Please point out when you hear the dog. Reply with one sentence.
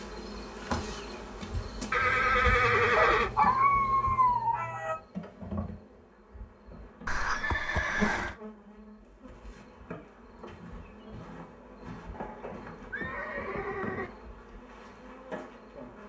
You can hear the dog from 3.0 to 5.0 s.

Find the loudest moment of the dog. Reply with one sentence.
The loudest moment of the dog is at 4 seconds.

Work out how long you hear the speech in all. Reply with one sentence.
The speech can't be heard in this clip.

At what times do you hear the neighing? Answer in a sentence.
You can hear the neighing from 1.9 to 3.3 s, from 7.0 to 8.3 s and from 12.1 to 14.1 s.